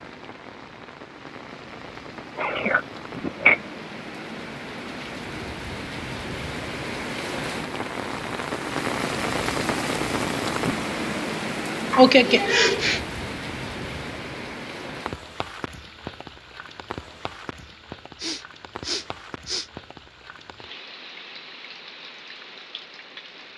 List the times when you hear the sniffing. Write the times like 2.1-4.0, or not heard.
2.4-3.6, 11.9-13.0, 18.2-19.7.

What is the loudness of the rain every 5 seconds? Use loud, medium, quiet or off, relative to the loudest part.
medium, loud, loud, medium, quiet.